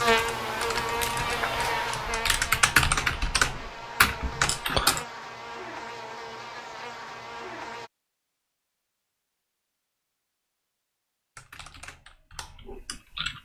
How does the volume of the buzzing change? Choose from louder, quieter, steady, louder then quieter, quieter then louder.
quieter.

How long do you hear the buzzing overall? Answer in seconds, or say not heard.
8 s.